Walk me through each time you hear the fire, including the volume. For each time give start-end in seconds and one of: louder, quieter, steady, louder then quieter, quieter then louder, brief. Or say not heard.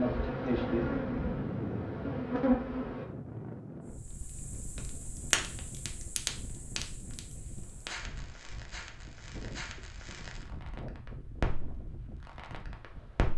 4.0-13.3 quieter then louder.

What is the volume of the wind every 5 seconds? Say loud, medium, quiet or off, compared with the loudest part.
loud, medium, medium.